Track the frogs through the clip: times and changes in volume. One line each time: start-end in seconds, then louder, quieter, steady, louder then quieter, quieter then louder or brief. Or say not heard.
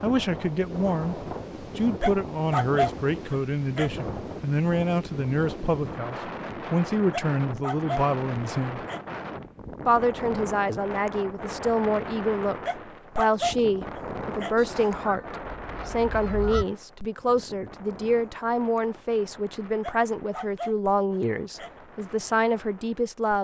not heard.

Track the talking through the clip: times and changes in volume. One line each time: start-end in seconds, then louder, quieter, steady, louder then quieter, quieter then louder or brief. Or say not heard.
0.0-8.8 steady
9.8-23.4 steady.